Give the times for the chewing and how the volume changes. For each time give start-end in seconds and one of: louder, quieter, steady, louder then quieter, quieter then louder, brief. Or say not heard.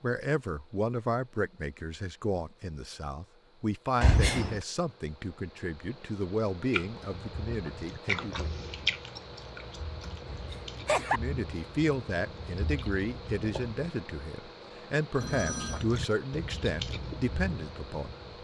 6.7-13.8 quieter
15.7-18.3 brief.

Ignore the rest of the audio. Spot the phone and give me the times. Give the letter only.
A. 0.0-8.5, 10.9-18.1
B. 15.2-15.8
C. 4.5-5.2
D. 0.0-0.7
B.